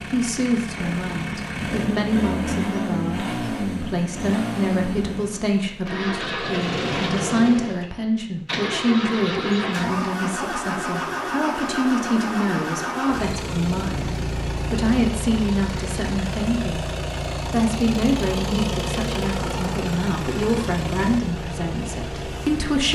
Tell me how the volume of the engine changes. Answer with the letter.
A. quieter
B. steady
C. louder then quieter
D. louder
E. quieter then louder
B.